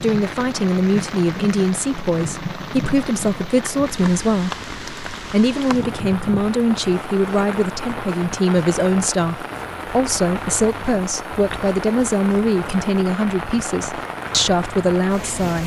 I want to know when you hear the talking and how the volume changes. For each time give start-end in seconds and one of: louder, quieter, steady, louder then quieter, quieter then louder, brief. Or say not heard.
0.0-15.6 steady.